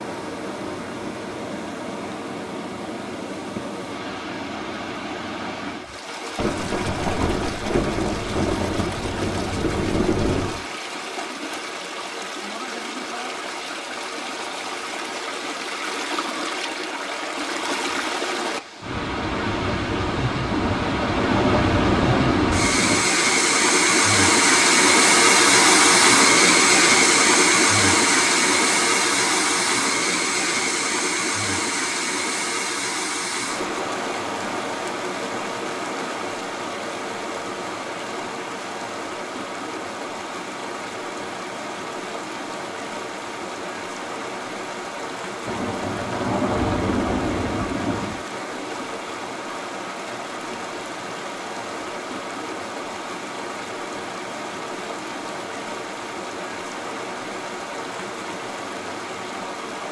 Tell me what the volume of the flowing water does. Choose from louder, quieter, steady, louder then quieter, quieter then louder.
louder then quieter.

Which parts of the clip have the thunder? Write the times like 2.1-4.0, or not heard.
6.3-10.7, 20.5-23.1, 45.5-48.2.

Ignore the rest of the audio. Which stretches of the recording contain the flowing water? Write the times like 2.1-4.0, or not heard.
0.0-59.8.